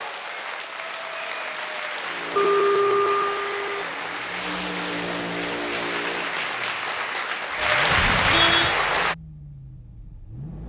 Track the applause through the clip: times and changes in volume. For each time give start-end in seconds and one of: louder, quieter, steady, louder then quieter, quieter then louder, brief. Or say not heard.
0.0-9.2 louder.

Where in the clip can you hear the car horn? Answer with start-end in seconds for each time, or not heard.
2.3-3.9, 7.8-8.8.